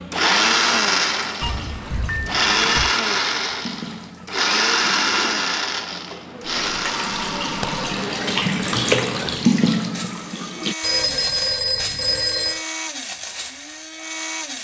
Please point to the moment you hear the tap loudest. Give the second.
9 s.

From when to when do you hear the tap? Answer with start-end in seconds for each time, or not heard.
0.0-10.8.